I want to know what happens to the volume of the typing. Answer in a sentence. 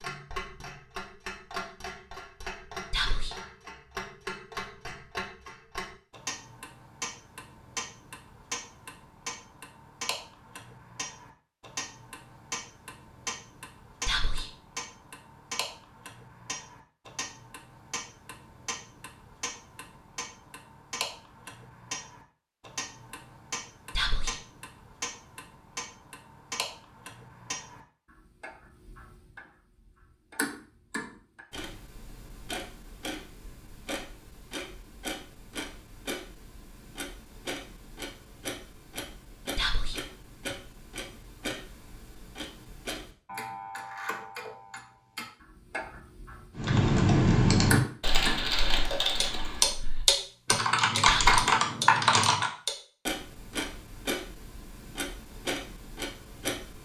The volume of the typing goes down, then up.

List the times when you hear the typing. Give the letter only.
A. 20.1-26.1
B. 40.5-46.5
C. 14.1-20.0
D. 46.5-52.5
D.